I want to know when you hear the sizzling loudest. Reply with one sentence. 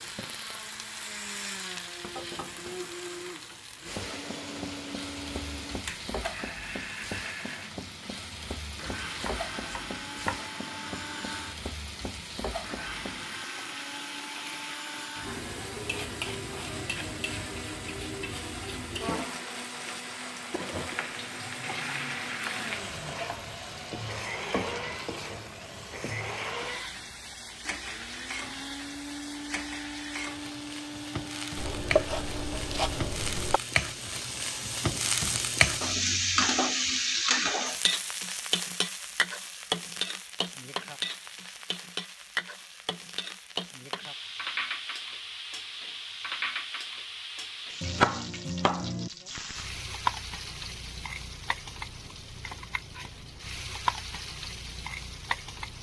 The volume of the sizzling peaks at 36 seconds.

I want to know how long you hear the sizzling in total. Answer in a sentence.
The sizzling can be heard for 56 seconds in total.